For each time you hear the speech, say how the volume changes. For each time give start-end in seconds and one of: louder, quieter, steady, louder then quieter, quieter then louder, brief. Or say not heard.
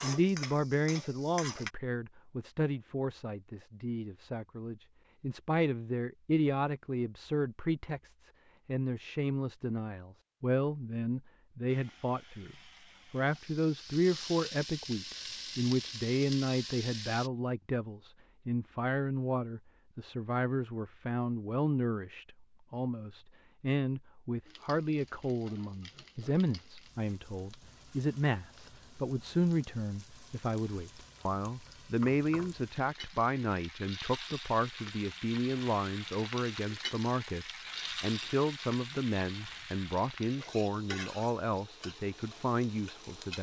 0.0-43.3 steady.